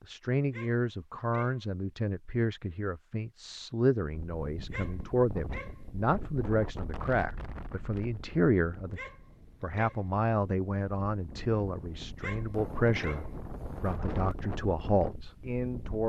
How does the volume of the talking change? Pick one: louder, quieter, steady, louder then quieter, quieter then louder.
steady.